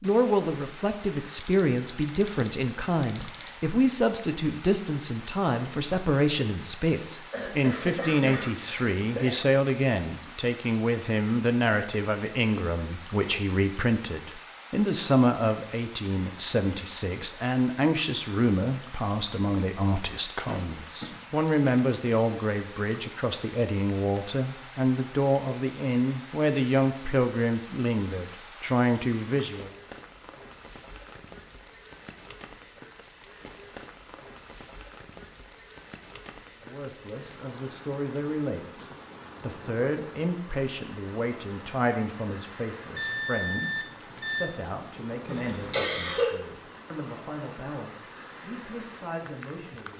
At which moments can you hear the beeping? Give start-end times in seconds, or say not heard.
1.4-3.5, 43.0-44.5.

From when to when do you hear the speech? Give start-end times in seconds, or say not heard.
0.0-29.7, 36.6-49.9.